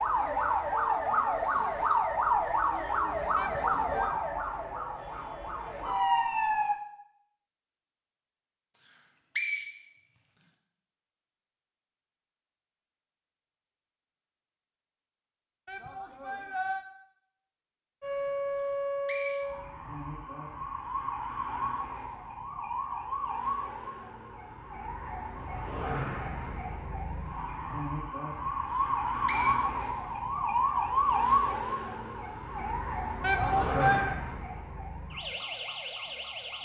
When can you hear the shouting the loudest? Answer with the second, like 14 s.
34 s.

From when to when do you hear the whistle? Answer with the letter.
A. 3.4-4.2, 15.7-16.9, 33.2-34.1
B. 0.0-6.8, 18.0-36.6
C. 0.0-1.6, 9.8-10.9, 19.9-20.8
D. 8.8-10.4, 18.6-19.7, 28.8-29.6
D.